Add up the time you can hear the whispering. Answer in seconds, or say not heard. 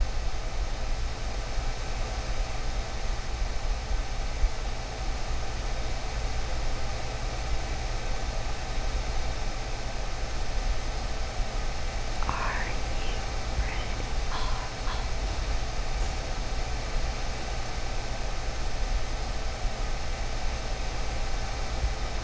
3 s.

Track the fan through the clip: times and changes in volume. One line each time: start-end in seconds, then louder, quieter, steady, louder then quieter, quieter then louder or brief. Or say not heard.
0.0-22.1 steady.